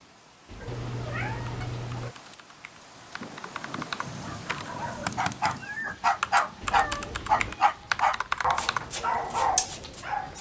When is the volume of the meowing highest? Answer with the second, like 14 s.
1 s.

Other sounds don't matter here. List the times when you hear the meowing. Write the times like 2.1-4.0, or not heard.
0.7-2.1, 6.7-7.8.